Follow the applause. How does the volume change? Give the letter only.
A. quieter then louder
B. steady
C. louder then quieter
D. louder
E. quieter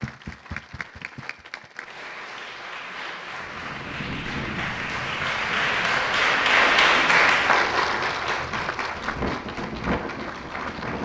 C.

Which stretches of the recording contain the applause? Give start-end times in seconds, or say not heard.
0.0-11.0.